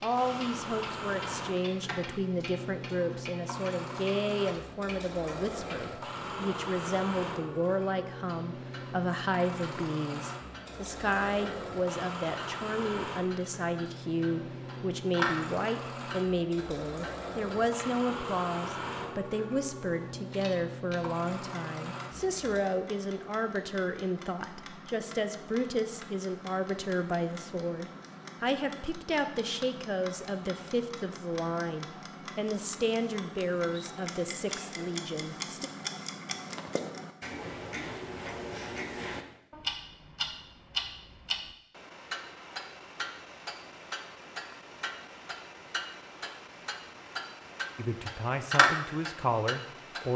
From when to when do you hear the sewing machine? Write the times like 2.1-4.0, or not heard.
0.0-22.6.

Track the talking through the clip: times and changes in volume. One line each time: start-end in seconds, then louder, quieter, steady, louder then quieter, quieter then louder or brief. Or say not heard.
0.0-35.7 steady
47.8-50.1 brief.